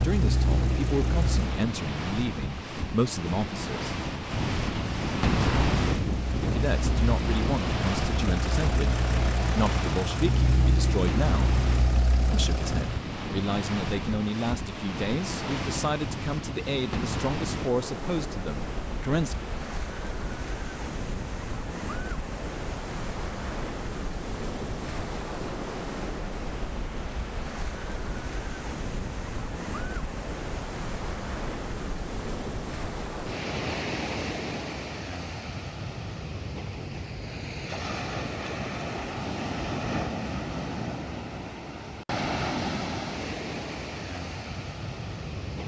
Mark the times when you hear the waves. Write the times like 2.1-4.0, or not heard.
0.0-45.6.